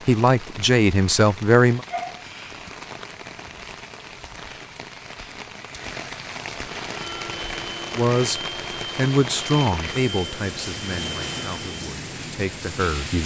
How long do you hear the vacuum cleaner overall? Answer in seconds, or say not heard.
5 s.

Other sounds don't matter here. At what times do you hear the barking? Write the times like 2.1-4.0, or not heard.
1.9-2.9.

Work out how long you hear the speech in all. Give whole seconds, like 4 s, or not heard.
7 s.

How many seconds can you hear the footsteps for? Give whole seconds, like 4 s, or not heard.
not heard.